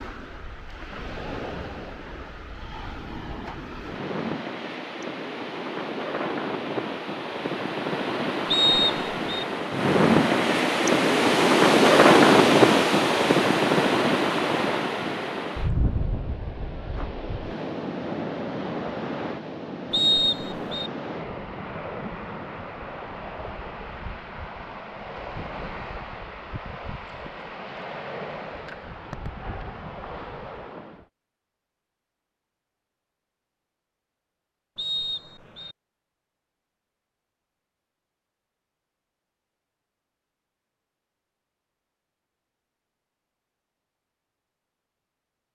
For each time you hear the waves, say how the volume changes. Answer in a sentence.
You can hear the waves from 0.0 to 31.1 s, getting louder then quieter.